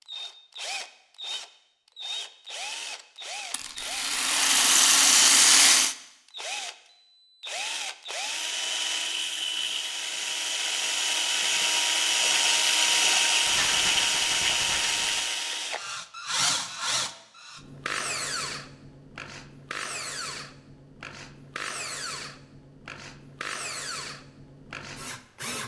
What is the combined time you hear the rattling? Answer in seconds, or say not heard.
4 s.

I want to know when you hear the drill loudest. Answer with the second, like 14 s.
13 s.